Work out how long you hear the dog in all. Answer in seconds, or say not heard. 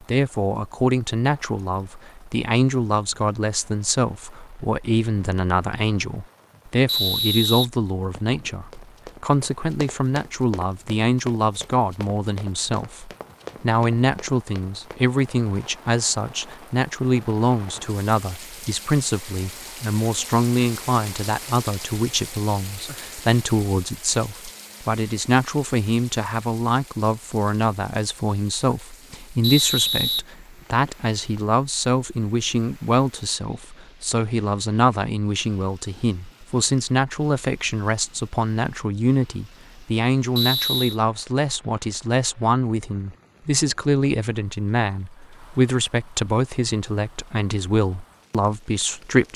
not heard.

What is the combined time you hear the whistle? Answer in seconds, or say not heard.
4 s.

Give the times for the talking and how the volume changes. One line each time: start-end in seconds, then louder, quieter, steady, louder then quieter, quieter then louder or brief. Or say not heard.
0.0-49.3 steady.